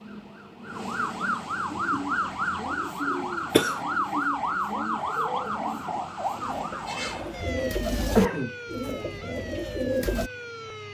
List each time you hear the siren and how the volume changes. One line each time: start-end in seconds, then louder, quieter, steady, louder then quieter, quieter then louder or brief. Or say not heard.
0.0-10.8 quieter.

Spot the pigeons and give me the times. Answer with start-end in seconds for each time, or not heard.
1.6-10.3.